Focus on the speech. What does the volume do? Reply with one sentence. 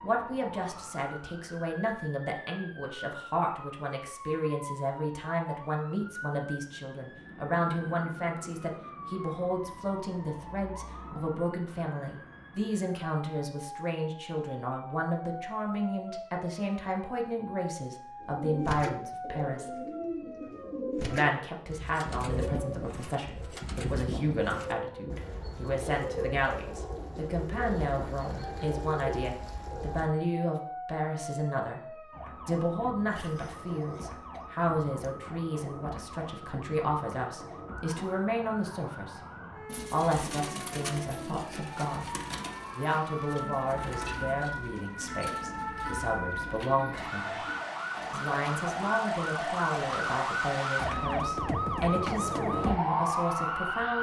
The volume of the speech stays about the same.